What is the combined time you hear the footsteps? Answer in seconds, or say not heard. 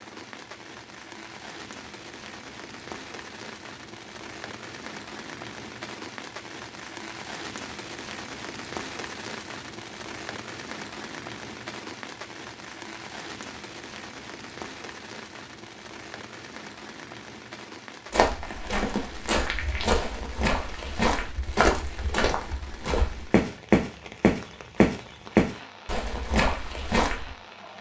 9 s.